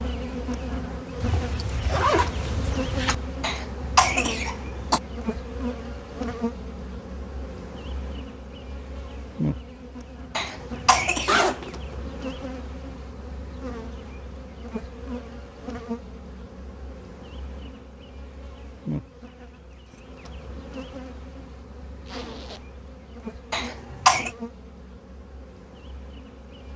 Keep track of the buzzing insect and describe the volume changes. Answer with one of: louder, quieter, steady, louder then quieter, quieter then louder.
quieter.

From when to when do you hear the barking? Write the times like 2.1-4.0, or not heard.
not heard.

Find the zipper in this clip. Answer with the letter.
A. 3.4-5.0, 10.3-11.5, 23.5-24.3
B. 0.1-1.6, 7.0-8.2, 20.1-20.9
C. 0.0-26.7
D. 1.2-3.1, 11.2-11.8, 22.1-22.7
D.